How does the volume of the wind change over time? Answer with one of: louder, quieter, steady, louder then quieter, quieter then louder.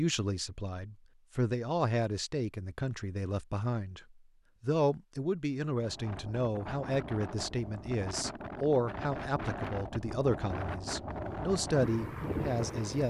louder.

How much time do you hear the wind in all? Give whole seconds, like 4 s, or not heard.
7 s.